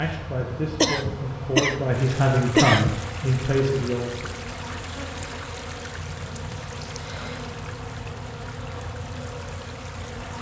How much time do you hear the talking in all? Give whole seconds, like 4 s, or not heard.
4 s.